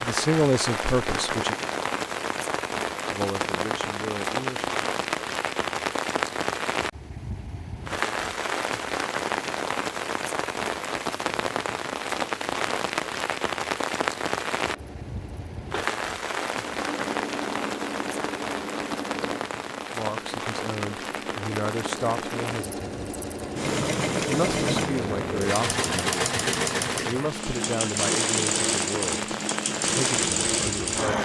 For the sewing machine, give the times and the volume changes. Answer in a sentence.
You can hear the sewing machine from 14.7 to 31.2 s, getting louder.